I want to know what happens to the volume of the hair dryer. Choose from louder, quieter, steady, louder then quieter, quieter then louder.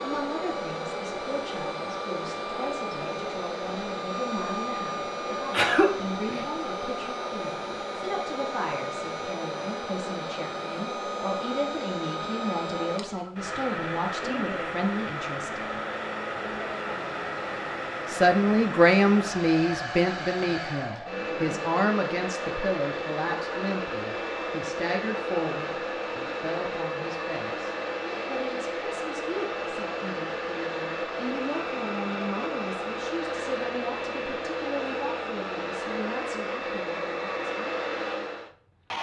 steady.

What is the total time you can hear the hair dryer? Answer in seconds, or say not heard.
39 s.